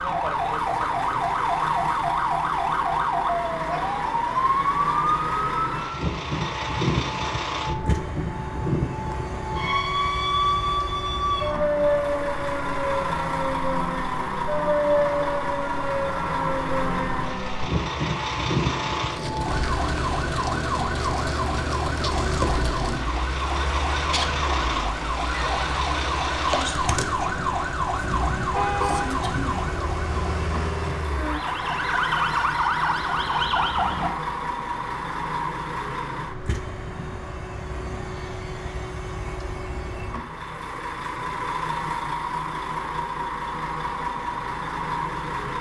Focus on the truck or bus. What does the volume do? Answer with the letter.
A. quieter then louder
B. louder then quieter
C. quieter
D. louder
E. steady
E.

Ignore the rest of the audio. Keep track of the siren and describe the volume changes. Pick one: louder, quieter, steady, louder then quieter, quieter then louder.
steady.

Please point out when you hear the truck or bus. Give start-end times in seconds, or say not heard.
0.0-45.5.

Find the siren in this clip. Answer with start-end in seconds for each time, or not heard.
0.0-34.1.